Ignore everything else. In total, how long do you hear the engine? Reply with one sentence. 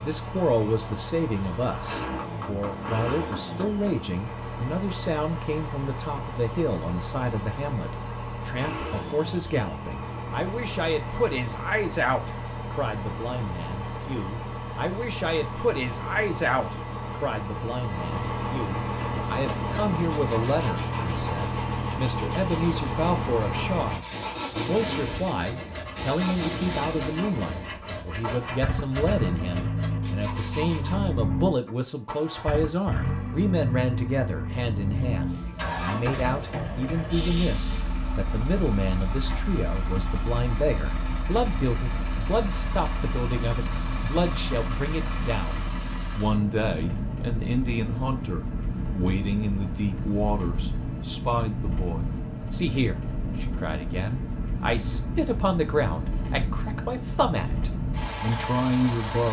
The engine can be heard for 59 seconds in total.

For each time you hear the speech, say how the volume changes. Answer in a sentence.
The speech can be heard from 0.0 to 59.2 s, at a steady volume.